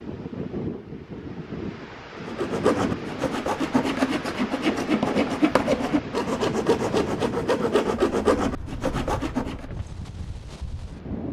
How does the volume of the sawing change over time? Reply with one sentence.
The volume of the sawing stays about the same.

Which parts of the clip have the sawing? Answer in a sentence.
The sawing can be heard from 2.2 to 9.7 s.